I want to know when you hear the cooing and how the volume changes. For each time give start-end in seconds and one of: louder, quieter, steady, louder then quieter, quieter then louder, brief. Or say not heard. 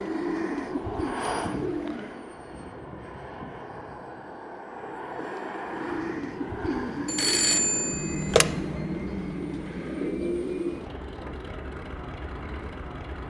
0.0-2.4 brief
5.7-11.0 quieter then louder.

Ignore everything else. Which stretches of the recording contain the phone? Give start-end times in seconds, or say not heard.
7.0-8.5.